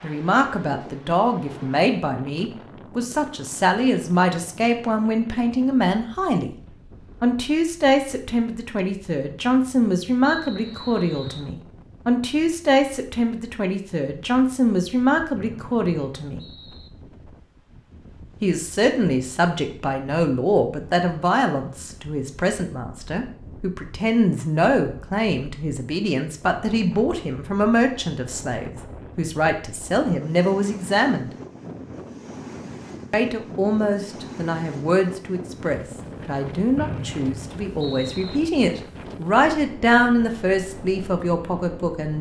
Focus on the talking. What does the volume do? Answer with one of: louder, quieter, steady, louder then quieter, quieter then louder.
steady.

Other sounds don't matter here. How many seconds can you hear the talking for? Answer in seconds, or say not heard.
38 s.